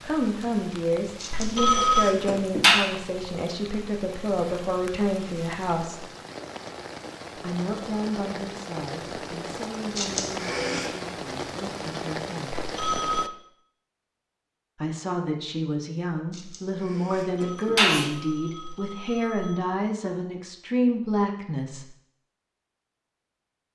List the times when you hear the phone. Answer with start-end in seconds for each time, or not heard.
1.3-2.1, 12.6-13.3, 17.3-19.6.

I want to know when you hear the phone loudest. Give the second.
2 s.